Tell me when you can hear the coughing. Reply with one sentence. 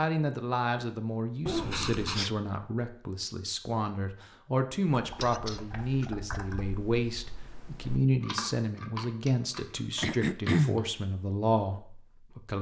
The coughing can be heard from 1.4 to 2.3 s, from 5.2 to 6.1 s and from 10.0 to 10.8 s.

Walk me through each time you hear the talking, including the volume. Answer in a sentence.
The talking can be heard from 0.0 to 12.5 s, at a steady volume.